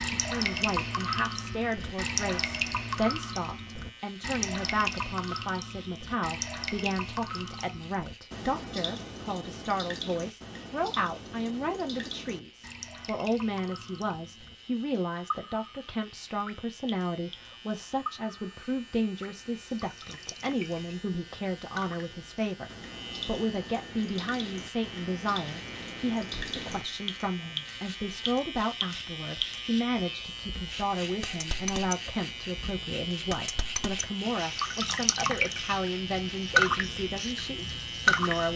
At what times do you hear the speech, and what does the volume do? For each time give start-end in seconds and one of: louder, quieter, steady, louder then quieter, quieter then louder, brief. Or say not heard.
0.0-38.5 steady.